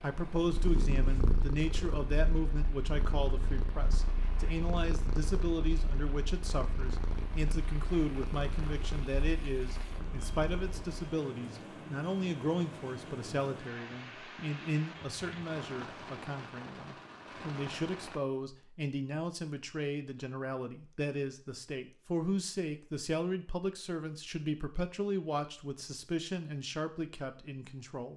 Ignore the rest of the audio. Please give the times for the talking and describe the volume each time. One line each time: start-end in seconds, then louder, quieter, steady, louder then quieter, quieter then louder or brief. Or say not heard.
0.0-28.1 steady.